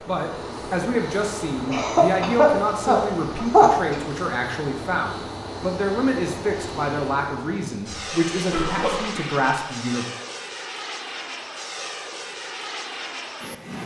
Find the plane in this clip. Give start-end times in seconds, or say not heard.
0.0-13.8.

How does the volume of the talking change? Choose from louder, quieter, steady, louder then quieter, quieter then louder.
steady.